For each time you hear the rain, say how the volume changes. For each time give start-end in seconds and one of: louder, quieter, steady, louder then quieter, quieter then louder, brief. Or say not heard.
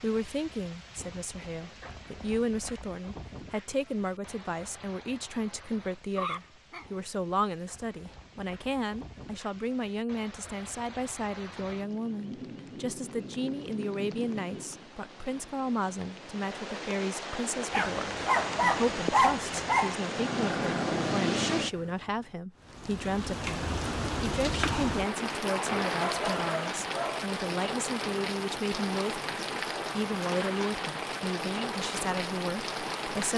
0.0-33.3 louder.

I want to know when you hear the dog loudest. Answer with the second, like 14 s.
19 s.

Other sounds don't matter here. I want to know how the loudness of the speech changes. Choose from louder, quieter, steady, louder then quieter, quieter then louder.
steady.